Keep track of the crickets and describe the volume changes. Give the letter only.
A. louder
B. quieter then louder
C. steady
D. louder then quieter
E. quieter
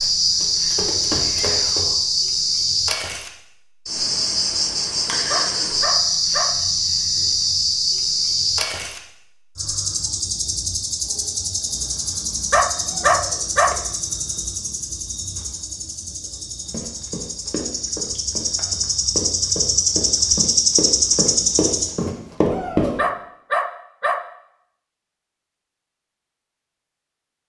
B.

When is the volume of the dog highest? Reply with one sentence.
The loudest moment of the dog is at 13 seconds.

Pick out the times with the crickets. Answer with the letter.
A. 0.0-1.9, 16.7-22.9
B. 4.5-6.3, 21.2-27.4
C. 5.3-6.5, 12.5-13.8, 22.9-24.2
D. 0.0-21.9
D.